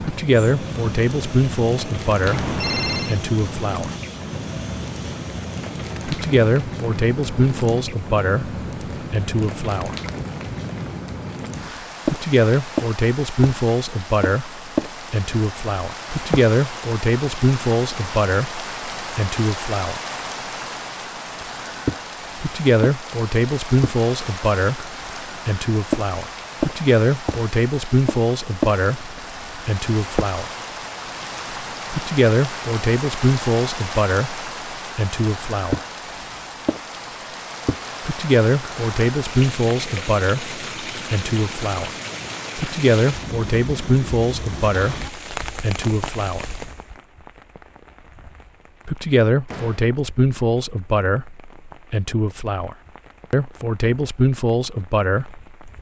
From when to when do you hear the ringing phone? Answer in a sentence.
You can hear the ringing phone from 2.2 to 3.2 s.